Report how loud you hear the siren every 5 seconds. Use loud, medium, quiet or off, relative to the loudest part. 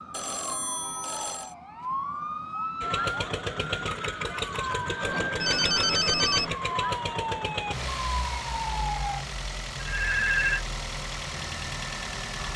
loud, loud, off.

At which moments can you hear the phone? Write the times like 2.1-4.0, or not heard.
0.1-1.6, 5.0-6.5, 9.8-10.7.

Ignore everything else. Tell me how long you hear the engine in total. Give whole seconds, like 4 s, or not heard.
10 s.